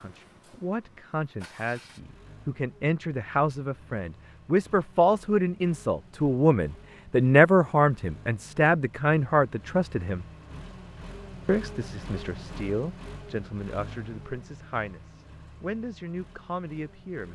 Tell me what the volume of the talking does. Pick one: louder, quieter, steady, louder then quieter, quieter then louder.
louder then quieter.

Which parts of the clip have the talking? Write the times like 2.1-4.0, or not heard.
0.0-10.2, 11.4-17.3.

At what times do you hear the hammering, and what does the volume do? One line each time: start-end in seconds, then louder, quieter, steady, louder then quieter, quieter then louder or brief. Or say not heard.
not heard.